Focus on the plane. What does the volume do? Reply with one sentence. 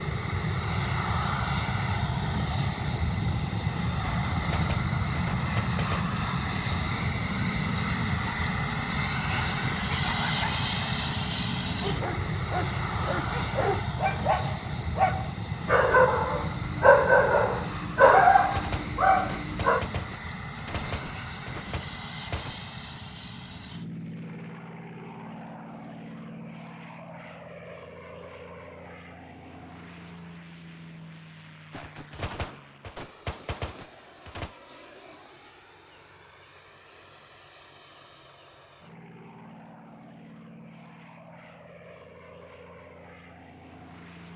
The volume of the plane goes down.